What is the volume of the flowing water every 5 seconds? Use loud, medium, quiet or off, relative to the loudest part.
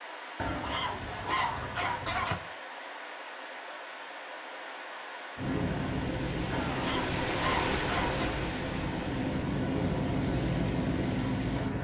medium, loud, medium.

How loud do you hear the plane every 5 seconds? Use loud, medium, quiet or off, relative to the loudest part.
off, loud, loud.